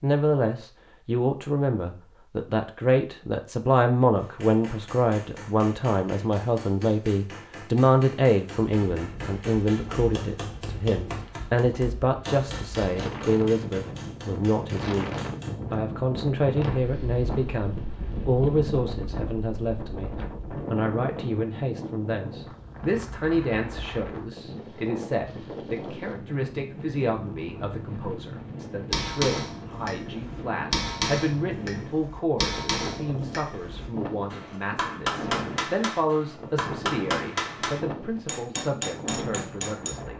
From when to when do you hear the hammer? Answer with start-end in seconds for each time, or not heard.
4.2-15.6, 28.9-40.0.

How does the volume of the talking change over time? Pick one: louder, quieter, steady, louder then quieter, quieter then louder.
quieter.